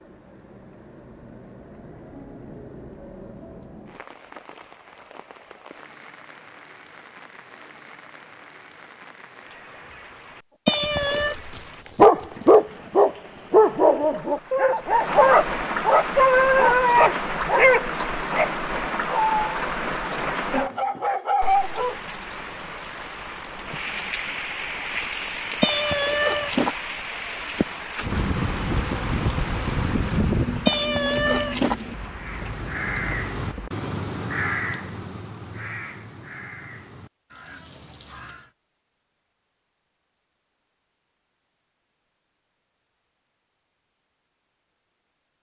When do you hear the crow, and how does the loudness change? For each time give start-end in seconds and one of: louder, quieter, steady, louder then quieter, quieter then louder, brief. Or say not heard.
32.1-38.5 quieter.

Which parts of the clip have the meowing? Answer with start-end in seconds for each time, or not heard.
10.7-11.3, 25.6-26.8, 30.6-31.8.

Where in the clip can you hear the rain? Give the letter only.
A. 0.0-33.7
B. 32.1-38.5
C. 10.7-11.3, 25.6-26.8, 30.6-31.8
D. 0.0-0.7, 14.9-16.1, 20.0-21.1
A.